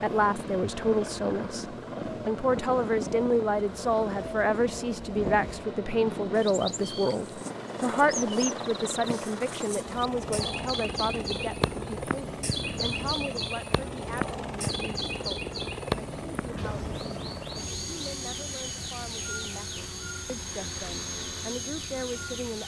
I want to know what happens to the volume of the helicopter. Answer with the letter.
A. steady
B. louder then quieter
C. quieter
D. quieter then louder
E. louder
A.